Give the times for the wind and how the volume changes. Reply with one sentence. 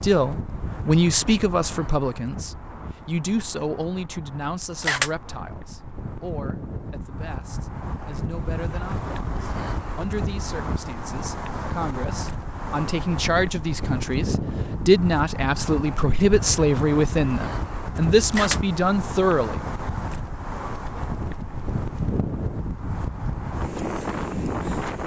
You can hear the wind from 0.0 to 25.0 s, getting louder.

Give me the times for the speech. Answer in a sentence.
You can hear the speech from 0.0 to 19.6 s.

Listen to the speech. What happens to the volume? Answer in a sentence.
The volume of the speech goes down, then up.